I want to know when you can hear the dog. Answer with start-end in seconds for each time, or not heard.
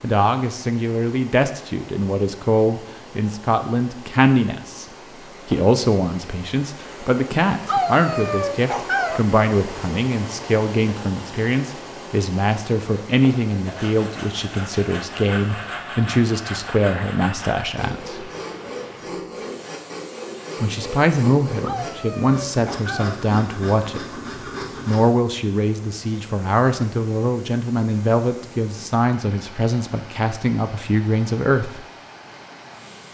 7.7-9.2, 21.6-23.1.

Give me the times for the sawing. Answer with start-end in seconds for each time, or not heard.
13.7-25.0.